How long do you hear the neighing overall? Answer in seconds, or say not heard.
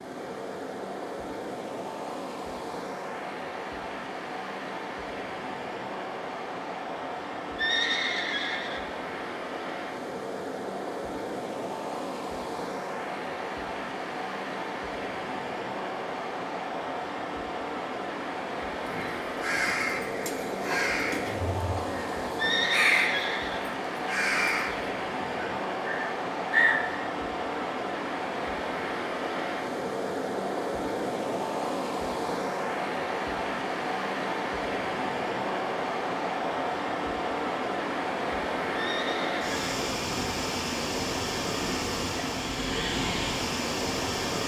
3 s.